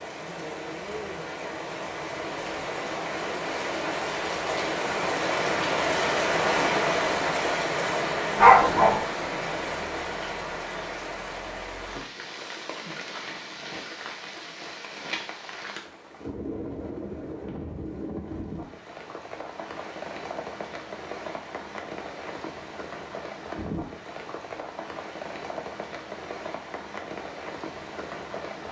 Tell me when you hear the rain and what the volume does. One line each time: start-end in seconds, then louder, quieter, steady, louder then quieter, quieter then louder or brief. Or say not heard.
0.0-28.6 quieter.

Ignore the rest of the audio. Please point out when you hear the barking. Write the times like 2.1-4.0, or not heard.
8.3-9.0.